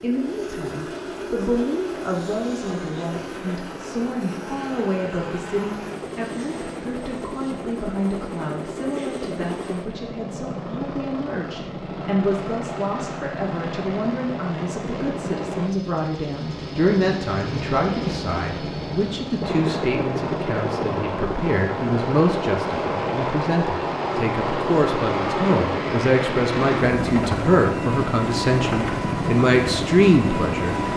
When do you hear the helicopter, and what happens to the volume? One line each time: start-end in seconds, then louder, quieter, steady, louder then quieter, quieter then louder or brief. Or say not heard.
0.0-30.9 louder.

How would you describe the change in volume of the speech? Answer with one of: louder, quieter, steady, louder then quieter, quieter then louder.
louder.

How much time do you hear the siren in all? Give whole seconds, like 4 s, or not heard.
not heard.